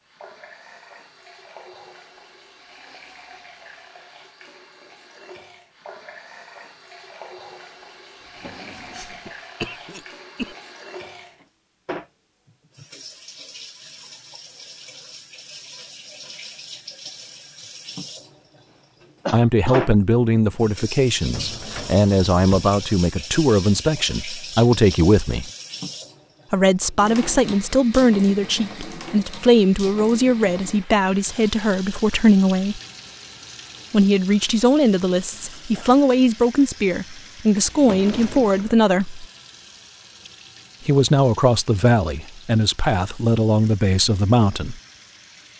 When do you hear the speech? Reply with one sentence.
You can hear the speech from 19.3 to 25.5 s, from 26.5 to 32.8 s, from 33.9 to 39.2 s and from 40.9 to 44.8 s.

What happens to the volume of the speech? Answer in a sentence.
The loudness of the speech stays about the same.